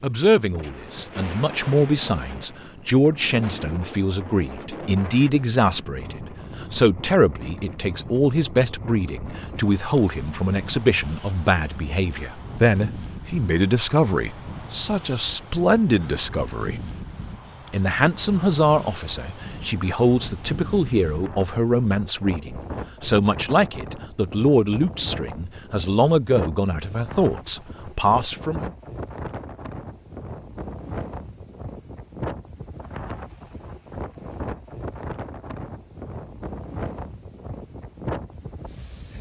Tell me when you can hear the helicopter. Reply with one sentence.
You can't hear the helicopter here.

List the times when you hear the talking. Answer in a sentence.
The talking can be heard from 0.0 to 16.8 s and from 17.7 to 28.7 s.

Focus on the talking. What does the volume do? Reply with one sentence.
The loudness of the talking stays about the same.